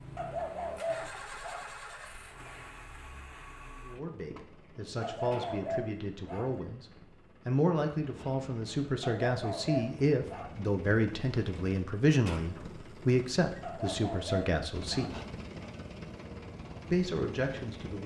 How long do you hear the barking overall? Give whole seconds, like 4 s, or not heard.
6 s.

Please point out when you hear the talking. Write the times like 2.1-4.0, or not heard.
3.9-6.8, 7.5-15.2, 16.9-18.0.